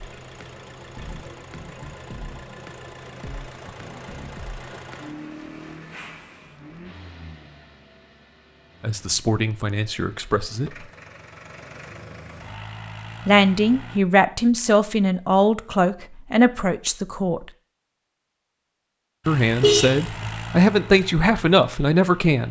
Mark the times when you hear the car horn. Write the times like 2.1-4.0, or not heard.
19.6-20.3.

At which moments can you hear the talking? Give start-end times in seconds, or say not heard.
8.8-10.7, 13.2-17.5, 19.2-22.4.